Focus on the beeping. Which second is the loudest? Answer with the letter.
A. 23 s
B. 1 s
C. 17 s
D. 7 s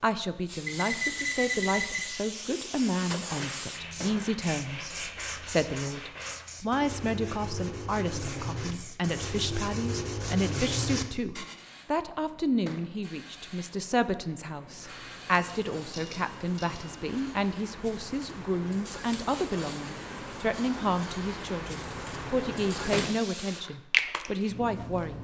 B.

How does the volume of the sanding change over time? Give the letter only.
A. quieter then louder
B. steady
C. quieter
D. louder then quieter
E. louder
E.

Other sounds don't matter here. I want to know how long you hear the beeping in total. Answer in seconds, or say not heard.
4 s.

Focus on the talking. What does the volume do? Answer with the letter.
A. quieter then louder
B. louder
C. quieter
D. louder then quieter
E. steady
E.